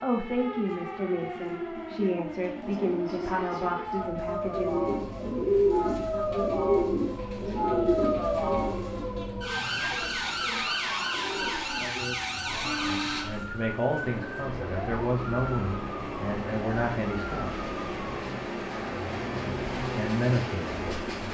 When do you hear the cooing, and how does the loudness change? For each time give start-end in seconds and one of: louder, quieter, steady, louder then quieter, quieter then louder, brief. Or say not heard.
4.5-14.2 quieter.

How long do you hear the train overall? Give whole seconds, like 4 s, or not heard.
21 s.